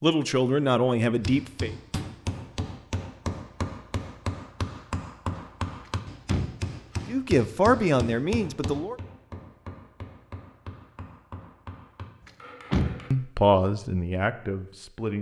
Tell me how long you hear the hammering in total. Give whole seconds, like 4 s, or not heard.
12 s.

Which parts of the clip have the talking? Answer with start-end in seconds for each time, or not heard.
0.0-1.7, 7.0-8.9, 13.1-15.1.